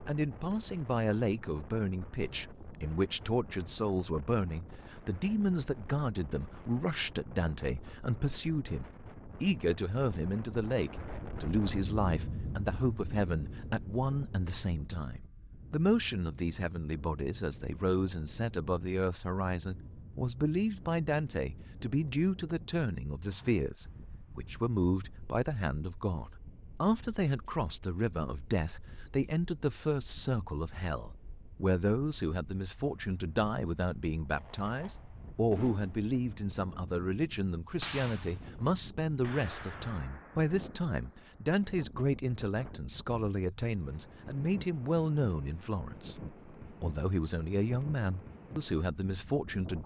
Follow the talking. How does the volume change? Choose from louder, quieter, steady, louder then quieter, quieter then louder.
steady.